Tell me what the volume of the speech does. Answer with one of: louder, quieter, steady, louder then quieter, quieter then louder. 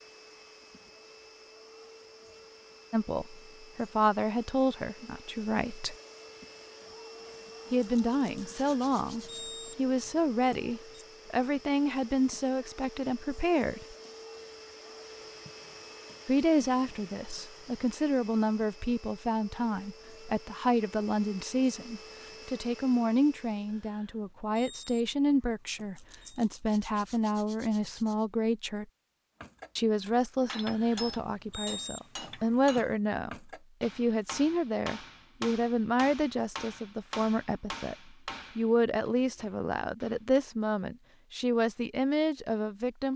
steady.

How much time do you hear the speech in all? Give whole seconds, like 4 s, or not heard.
35 s.